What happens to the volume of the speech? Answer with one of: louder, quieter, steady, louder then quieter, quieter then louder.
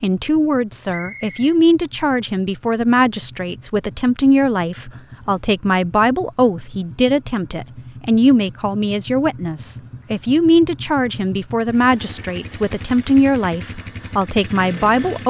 steady.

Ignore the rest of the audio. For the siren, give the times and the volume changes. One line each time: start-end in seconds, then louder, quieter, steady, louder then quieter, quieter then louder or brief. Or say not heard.
not heard.